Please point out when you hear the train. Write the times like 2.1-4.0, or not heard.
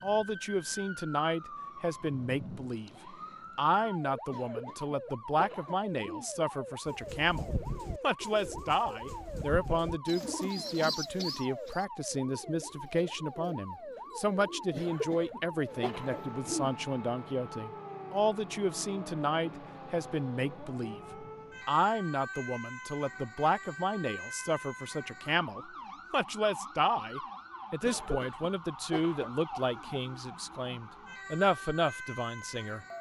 not heard.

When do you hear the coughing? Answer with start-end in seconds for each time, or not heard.
4.2-6.3, 14.7-16.7, 27.8-29.3.